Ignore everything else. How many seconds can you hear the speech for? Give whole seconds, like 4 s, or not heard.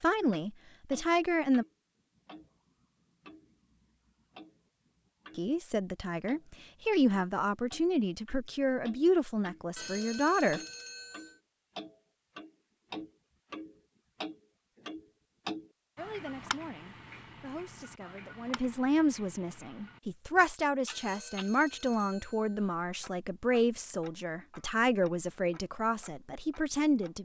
18 s.